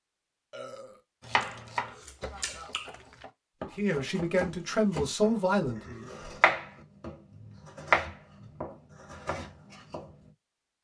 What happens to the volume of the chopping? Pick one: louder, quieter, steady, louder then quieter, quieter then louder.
louder then quieter.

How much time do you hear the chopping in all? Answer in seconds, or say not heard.
9 s.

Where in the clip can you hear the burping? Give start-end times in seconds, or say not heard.
0.5-1.0, 5.6-6.3.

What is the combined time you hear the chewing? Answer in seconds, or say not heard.
2 s.